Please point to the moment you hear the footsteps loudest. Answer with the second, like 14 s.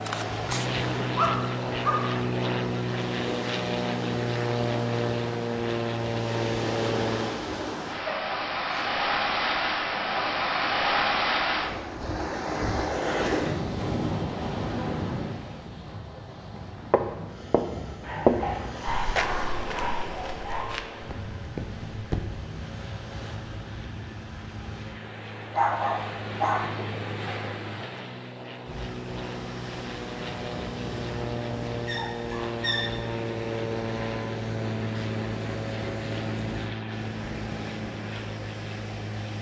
18 s.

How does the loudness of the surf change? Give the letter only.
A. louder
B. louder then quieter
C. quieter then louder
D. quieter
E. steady
B.